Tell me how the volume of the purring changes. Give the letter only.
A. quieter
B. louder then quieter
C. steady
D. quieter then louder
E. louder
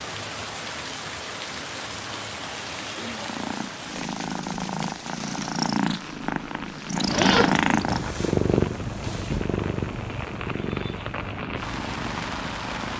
B.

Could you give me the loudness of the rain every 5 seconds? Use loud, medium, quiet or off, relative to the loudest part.
loud, medium, loud.